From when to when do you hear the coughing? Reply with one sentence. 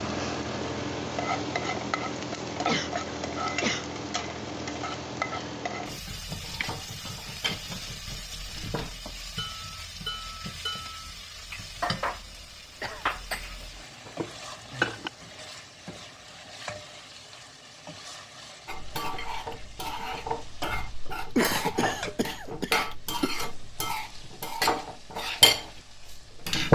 You can hear the coughing from 2.6 to 3.9 s, from 12.8 to 13.5 s and from 21.4 to 23.4 s.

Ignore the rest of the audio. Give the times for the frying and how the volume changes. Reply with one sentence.
You can hear the frying from 0.0 to 26.6 s, getting quieter.